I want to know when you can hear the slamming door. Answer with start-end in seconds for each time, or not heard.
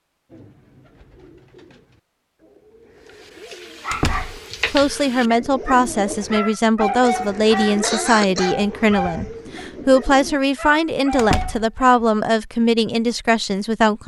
3.9-4.4, 11.2-11.7.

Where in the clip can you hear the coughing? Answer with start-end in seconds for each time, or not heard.
7.0-8.6.